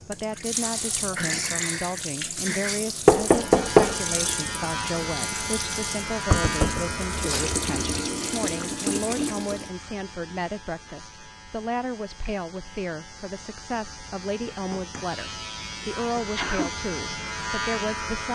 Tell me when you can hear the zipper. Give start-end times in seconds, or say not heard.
not heard.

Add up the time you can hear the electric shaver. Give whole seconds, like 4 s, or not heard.
15 s.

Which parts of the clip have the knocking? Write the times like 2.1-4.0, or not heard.
3.0-4.0, 6.3-8.0, 14.5-15.2.